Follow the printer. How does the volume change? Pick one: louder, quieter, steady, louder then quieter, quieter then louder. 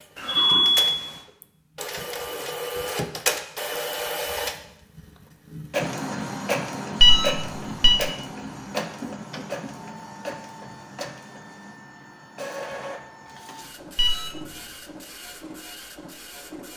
quieter.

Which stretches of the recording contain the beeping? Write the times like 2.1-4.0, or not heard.
0.1-1.2, 7.0-8.0, 13.9-14.4.